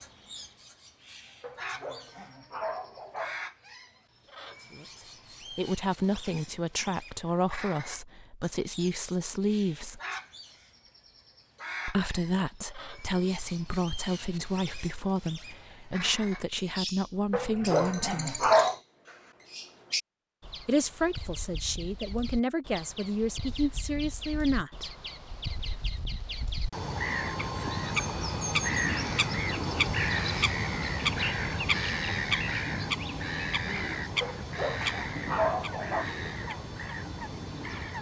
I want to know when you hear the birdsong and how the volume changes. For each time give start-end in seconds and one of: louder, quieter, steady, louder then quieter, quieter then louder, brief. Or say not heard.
0.0-37.9 louder.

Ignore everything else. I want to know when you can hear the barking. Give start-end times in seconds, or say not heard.
1.4-3.4, 17.3-18.8, 34.2-36.1.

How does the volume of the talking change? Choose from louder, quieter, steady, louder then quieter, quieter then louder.
steady.